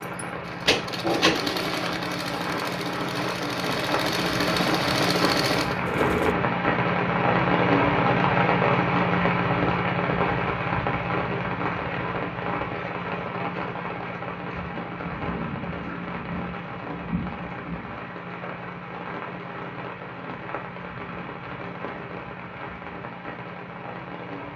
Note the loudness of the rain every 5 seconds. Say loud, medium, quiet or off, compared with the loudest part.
medium, loud, medium, medium, quiet.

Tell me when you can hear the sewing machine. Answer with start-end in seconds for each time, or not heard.
0.0-6.3.